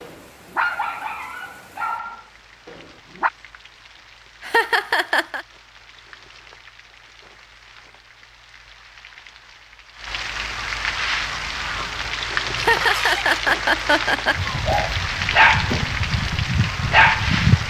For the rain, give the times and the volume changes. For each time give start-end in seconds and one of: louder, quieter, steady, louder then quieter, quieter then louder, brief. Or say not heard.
0.0-17.6 louder.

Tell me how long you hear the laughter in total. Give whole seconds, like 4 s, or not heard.
3 s.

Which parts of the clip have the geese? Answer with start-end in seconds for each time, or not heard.
10.3-17.6.